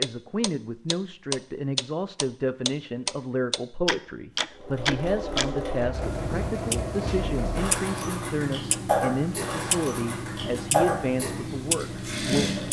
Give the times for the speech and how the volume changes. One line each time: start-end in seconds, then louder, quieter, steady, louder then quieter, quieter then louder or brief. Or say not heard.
0.0-12.6 steady.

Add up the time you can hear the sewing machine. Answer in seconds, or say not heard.
8 s.